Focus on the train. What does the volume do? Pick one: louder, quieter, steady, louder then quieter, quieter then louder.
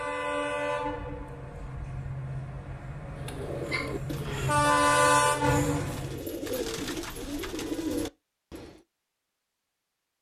quieter then louder.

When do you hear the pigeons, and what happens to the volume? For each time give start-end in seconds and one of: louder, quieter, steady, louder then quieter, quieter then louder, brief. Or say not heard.
3.1-8.8 quieter then louder.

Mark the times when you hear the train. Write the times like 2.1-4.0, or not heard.
0.0-6.2.